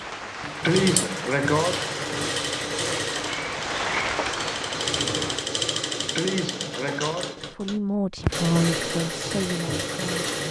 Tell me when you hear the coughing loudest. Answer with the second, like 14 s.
1 s.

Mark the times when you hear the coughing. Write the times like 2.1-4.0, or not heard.
0.6-1.8, 6.2-7.4.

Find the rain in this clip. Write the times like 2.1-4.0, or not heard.
0.0-5.5.